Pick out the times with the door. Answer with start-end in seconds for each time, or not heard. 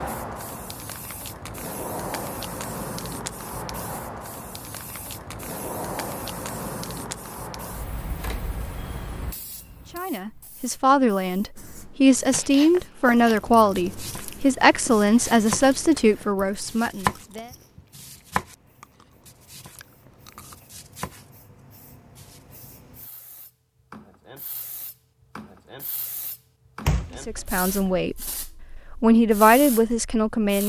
26.9-28.0.